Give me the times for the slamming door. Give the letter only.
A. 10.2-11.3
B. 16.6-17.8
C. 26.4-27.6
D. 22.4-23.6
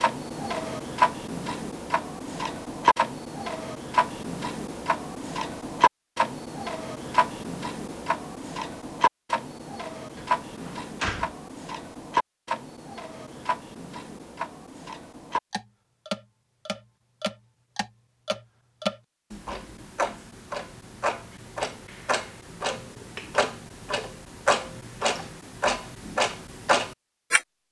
A.